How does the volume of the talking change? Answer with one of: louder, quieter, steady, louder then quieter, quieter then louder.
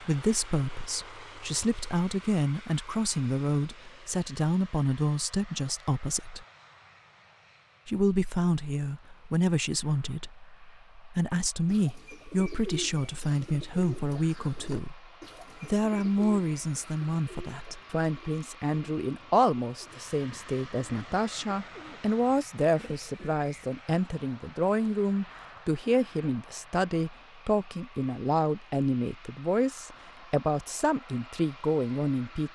steady.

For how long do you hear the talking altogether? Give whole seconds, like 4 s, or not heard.
31 s.